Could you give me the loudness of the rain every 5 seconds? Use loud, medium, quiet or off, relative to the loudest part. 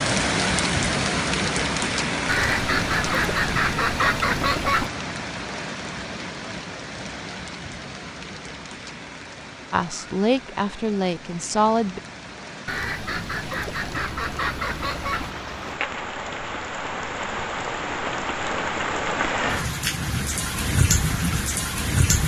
loud, medium, quiet, loud, loud.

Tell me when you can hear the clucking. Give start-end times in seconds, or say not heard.
2.2-4.9, 12.7-15.3.